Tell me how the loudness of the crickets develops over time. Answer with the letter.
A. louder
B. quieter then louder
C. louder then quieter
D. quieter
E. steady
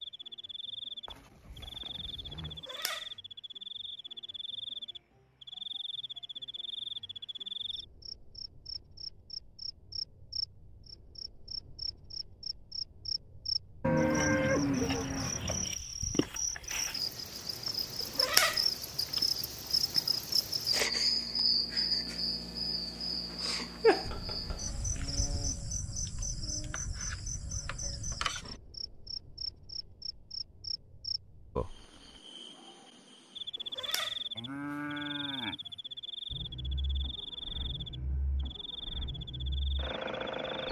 C.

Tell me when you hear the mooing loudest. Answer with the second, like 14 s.
14 s.